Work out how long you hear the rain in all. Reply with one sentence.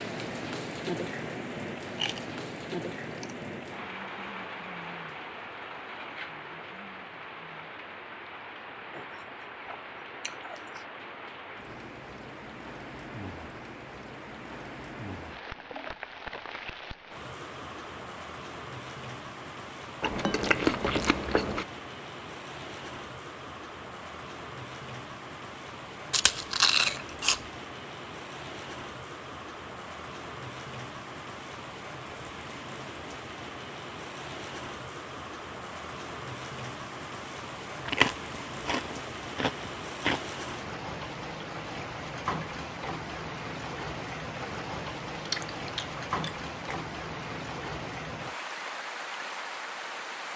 The rain can be heard for 50 seconds in total.